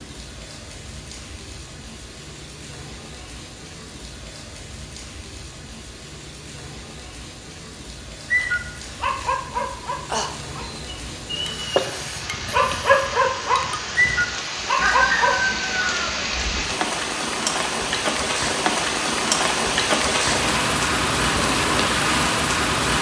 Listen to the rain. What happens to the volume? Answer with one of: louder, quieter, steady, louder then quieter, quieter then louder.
louder.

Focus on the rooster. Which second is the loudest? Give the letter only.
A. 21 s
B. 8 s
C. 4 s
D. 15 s
D.